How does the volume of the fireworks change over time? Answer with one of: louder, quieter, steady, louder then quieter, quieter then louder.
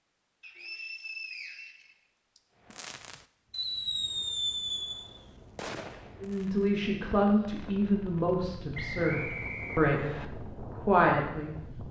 quieter.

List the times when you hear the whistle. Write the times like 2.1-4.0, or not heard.
0.4-2.4, 8.7-10.2.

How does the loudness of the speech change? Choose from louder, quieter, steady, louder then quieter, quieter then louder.
quieter then louder.